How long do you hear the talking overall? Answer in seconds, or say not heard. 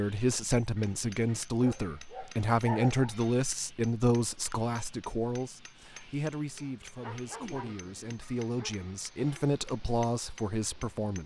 11 s.